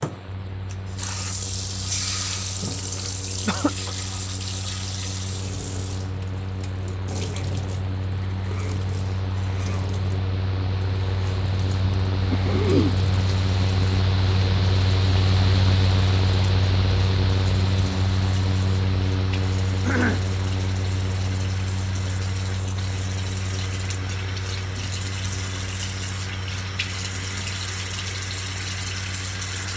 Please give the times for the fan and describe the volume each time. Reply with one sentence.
The fan can be heard from 0.0 to 29.7 s, getting louder then quieter.